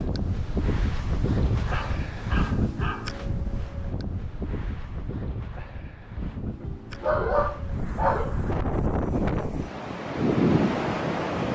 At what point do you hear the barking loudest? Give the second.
7 s.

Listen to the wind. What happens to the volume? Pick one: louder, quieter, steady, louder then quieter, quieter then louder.
quieter then louder.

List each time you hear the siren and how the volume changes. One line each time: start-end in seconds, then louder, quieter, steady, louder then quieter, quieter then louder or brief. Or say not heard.
not heard.